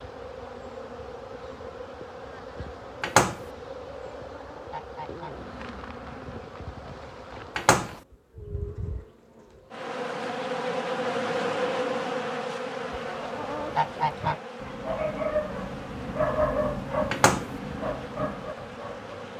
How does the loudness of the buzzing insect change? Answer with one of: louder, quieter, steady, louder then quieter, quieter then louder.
louder then quieter.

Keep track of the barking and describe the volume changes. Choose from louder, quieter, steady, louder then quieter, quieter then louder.
louder then quieter.